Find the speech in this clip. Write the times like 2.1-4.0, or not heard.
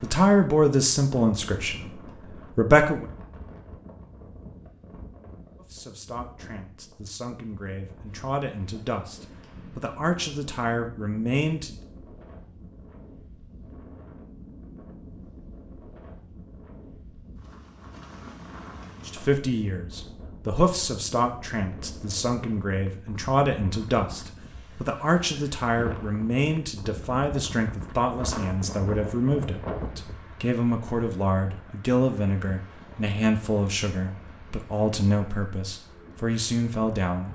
0.0-3.0, 5.5-11.8, 19.1-37.3.